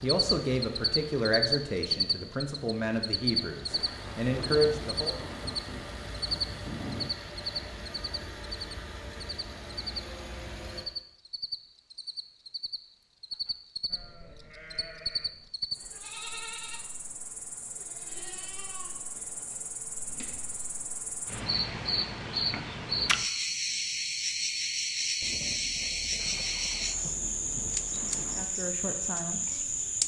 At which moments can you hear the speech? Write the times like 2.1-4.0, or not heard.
0.0-5.2, 28.4-29.7.